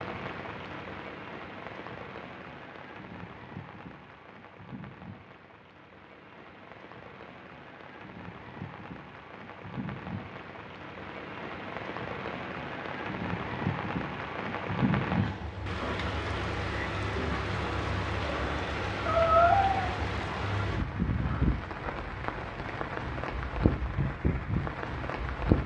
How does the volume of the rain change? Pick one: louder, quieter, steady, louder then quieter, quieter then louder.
louder.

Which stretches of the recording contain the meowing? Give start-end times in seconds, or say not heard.
19.1-19.9.